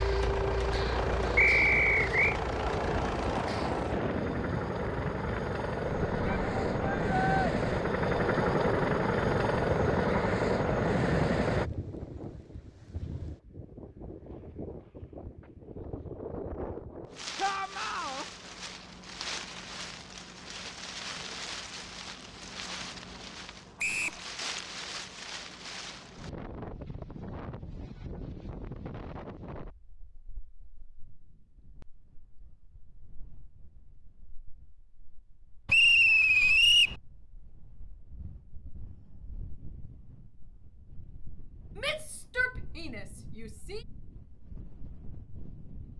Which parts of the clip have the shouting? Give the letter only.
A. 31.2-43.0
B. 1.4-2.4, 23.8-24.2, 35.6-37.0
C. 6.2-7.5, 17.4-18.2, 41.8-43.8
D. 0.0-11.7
C.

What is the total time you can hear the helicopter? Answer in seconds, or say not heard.
12 s.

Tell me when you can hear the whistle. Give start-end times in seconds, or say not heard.
1.4-2.4, 23.8-24.2, 35.6-37.0.